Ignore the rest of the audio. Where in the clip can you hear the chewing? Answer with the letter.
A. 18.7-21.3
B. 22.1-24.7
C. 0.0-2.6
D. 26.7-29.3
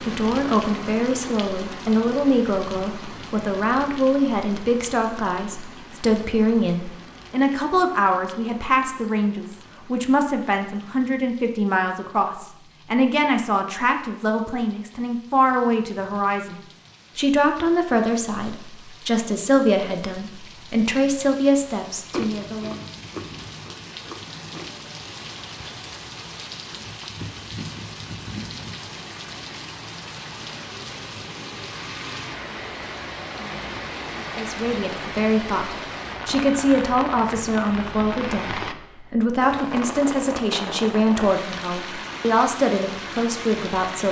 B.